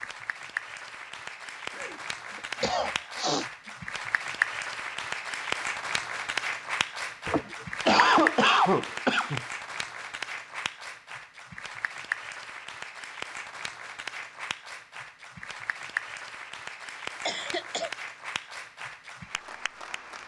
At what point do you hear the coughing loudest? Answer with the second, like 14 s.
8 s.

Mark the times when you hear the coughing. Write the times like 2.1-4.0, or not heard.
1.8-3.5, 7.2-9.4, 17.2-17.9.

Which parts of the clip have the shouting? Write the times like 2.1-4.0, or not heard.
not heard.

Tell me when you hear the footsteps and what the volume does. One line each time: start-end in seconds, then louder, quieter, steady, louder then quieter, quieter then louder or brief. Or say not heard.
not heard.